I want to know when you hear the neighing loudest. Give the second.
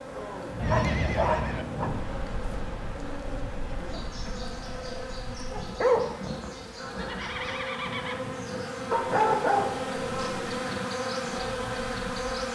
1 s.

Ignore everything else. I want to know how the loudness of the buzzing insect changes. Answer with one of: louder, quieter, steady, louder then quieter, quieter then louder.
louder.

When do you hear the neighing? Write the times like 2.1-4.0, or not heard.
0.6-1.6, 6.8-8.2.